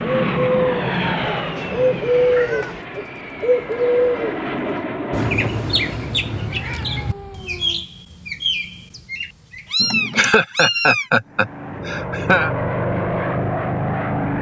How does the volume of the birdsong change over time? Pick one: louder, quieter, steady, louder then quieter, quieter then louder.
quieter.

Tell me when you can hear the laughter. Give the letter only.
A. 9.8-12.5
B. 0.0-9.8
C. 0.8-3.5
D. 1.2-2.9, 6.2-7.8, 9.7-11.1
A.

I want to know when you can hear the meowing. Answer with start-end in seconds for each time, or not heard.
1.2-2.9, 6.2-7.8, 9.7-11.1.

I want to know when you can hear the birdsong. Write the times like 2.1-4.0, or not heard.
0.0-9.8.